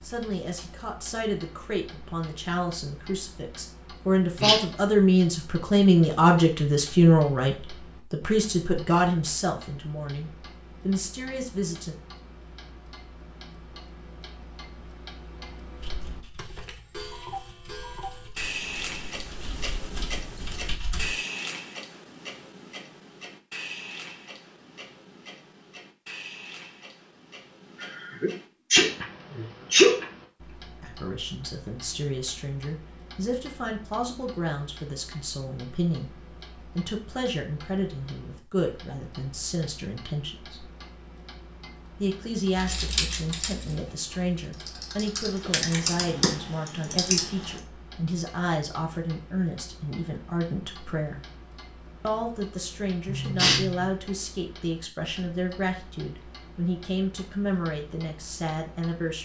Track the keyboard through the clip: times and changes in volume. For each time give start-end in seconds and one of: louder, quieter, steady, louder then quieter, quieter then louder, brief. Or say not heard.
15.8-21.1 louder
42.5-47.6 quieter then louder.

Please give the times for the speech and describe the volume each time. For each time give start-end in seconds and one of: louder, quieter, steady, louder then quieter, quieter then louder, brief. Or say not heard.
0.0-11.9 louder then quieter
30.8-40.6 steady
42.0-51.2 steady
52.0-59.1 steady.